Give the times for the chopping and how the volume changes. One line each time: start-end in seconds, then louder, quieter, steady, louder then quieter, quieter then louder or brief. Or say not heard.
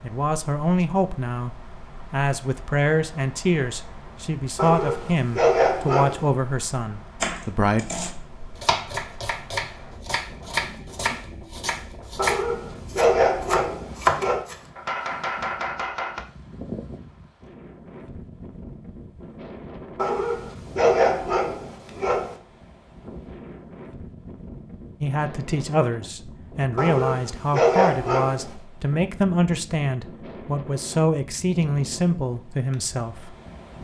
7.2-16.2 louder then quieter.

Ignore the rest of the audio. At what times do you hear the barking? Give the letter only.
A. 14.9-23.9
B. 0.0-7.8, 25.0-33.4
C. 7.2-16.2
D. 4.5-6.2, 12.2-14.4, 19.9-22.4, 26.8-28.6
D.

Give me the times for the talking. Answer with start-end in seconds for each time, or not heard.
0.0-7.8, 25.0-33.4.